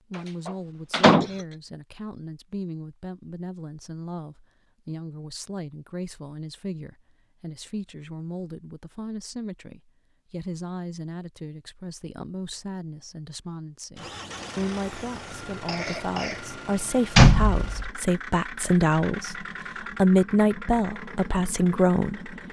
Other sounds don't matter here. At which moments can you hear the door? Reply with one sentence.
The door can be heard from 0.5 to 1.2 s and from 17.1 to 17.9 s.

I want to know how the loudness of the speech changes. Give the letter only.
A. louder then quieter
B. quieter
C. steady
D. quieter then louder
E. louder
E.